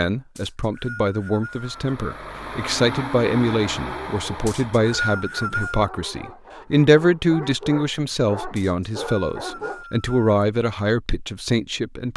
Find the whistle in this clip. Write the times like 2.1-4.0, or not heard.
0.3-1.8, 4.5-5.9, 8.6-10.4.